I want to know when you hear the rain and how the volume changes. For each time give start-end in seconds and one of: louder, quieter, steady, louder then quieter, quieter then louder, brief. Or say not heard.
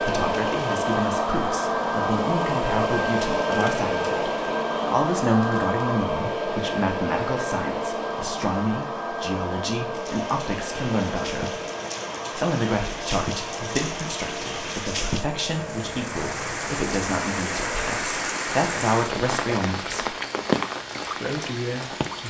9.9-22.2 louder.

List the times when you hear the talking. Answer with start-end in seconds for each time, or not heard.
0.0-11.6, 12.3-20.1, 21.1-22.2.